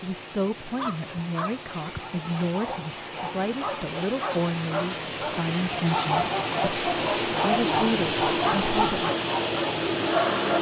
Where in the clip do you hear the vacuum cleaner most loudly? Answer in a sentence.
The loudest moment of the vacuum cleaner is at 10 seconds.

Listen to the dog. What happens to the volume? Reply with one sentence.
The volume of the dog goes up.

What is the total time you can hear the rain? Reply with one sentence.
The rain can be heard for 10 seconds in total.